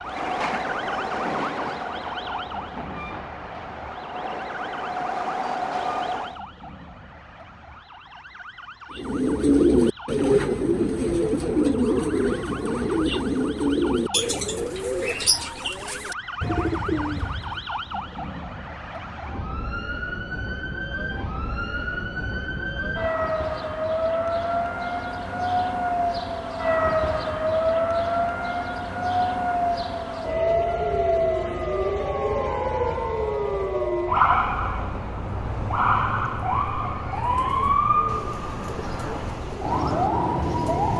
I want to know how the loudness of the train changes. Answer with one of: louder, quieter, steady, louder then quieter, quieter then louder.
quieter then louder.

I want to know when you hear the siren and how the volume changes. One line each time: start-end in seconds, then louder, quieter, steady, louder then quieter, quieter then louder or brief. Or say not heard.
0.0-40.9 louder.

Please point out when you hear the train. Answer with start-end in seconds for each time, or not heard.
0.0-6.4.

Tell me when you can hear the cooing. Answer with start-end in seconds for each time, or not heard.
8.9-17.7, 37.1-40.9.